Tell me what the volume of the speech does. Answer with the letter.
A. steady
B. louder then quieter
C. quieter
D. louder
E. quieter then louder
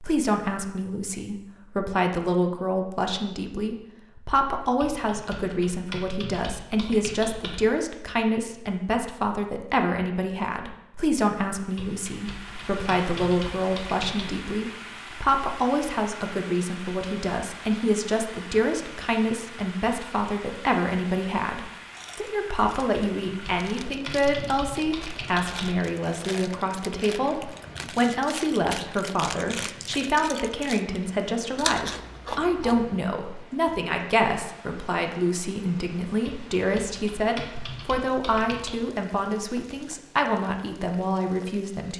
A.